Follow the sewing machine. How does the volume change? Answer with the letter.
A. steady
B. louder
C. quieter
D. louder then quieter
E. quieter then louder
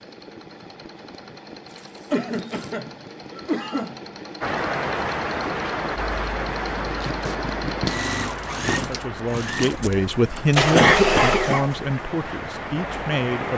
B.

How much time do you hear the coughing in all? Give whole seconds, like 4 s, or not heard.
3 s.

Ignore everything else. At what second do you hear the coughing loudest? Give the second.
11 s.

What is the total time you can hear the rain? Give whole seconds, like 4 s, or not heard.
9 s.